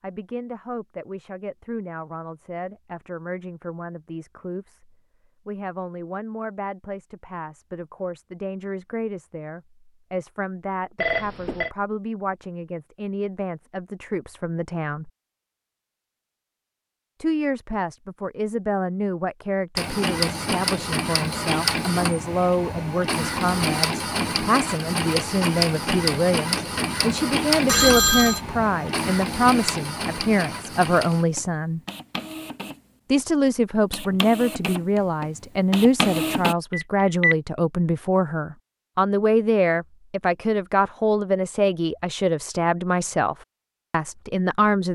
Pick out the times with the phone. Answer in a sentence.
The phone can be heard from 10.9 to 11.7 s, from 27.6 to 28.4 s and from 36.7 to 37.4 s.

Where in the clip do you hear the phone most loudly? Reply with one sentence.
The loudest moment of the phone is at 28 seconds.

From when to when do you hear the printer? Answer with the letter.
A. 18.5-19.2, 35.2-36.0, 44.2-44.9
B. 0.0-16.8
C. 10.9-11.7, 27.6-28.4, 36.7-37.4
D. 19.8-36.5
D.